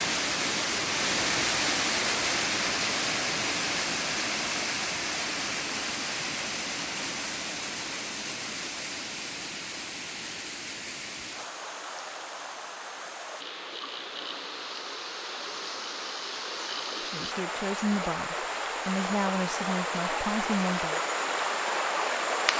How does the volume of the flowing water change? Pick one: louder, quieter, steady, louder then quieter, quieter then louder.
quieter then louder.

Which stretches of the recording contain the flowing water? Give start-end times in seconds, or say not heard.
0.0-22.5.